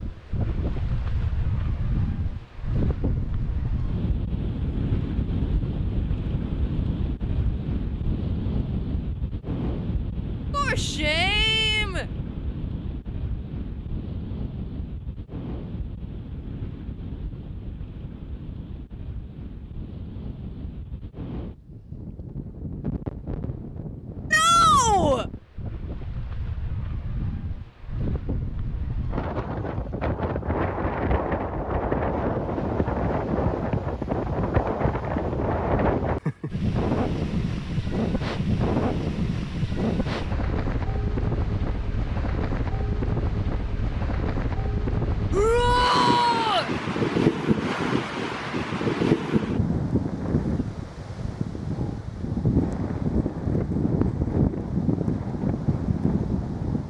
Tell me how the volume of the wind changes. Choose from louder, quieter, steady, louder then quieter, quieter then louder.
quieter then louder.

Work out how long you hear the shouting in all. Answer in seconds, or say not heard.
4 s.